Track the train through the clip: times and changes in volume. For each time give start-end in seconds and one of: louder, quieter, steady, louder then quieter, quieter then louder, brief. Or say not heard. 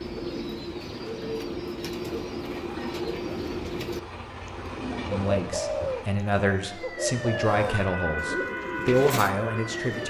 0.0-6.2 louder.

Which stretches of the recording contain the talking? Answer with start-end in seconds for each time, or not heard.
5.0-10.0.